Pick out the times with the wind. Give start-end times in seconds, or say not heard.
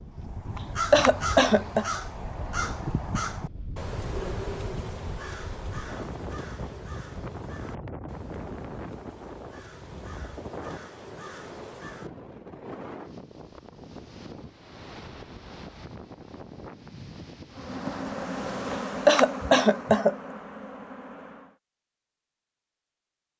0.0-18.9.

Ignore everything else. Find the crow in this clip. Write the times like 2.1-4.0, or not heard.
0.1-12.1.